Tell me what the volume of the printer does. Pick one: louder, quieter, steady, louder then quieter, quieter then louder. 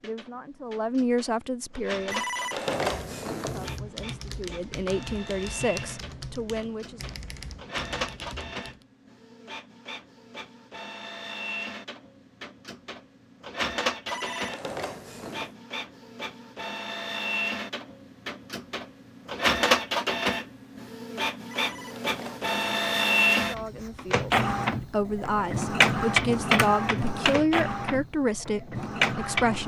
louder.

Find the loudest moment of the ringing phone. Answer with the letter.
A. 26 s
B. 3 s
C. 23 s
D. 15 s
B.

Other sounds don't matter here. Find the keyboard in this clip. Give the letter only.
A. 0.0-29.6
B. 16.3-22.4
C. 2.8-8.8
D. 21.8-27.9
C.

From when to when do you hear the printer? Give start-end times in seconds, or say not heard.
0.0-29.6.